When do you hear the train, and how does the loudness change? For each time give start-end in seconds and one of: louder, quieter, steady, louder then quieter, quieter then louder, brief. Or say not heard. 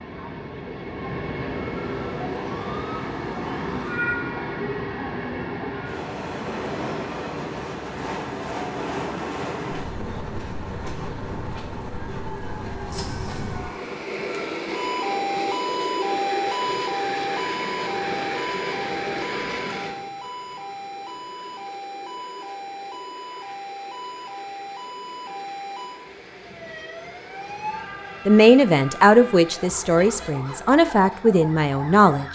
0.0-32.2 quieter.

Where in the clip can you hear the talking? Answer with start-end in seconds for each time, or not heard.
28.2-32.2.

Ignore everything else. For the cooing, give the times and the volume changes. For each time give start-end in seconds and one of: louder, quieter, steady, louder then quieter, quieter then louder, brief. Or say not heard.
not heard.